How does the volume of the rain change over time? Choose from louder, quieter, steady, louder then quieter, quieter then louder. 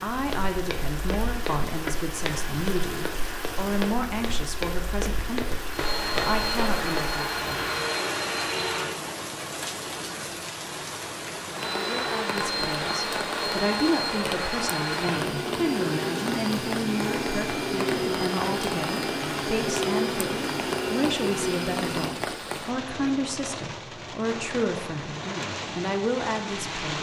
steady.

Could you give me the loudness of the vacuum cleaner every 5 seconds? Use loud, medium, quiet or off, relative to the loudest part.
off, loud, loud, loud, loud, off.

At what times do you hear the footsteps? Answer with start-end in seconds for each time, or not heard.
0.1-7.2.